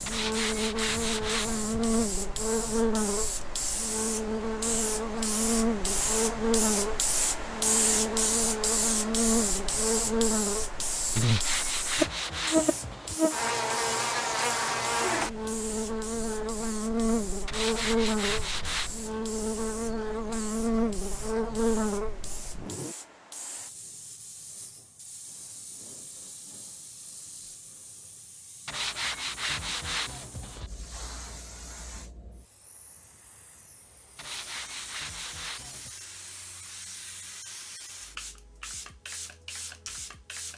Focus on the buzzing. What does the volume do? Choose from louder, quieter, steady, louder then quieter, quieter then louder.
steady.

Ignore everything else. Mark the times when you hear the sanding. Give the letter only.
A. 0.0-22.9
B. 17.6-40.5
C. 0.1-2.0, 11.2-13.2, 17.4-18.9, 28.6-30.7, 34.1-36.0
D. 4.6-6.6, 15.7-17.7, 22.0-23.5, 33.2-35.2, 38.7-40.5
C.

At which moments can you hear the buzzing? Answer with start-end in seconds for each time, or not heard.
0.0-22.9.